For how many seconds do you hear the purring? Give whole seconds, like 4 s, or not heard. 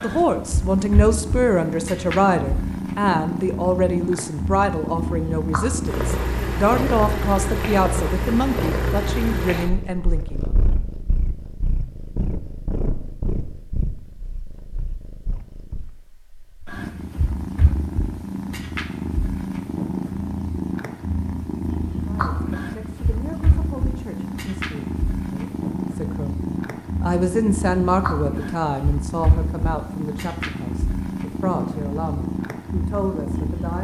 34 s.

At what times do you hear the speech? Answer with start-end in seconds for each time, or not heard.
0.0-10.4, 22.1-33.7.